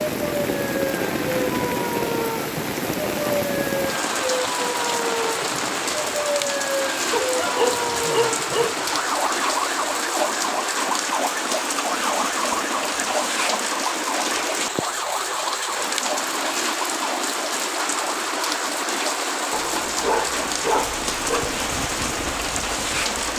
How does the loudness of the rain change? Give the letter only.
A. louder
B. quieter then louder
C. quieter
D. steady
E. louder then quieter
D.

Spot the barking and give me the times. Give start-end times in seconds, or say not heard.
7.1-8.8, 19.5-21.6.